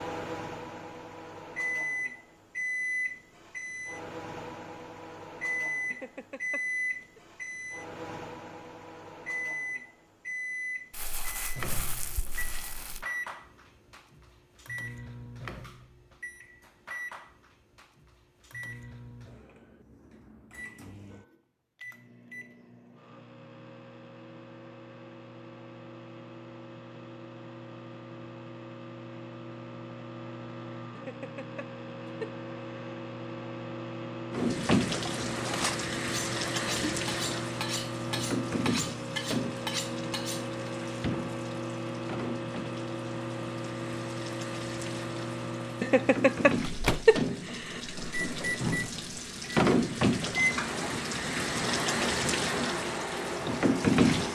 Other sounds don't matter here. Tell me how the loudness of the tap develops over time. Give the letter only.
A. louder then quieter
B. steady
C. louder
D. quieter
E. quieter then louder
E.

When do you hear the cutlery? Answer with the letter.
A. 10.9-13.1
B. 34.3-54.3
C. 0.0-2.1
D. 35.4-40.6
D.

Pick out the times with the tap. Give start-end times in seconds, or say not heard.
34.3-54.3.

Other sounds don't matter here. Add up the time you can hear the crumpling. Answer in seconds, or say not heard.
2 s.